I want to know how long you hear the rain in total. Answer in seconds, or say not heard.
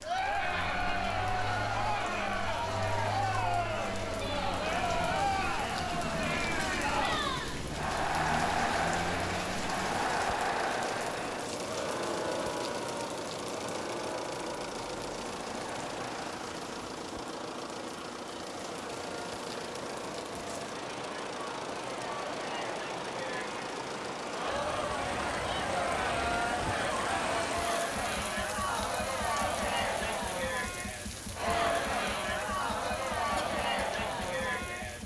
35 s.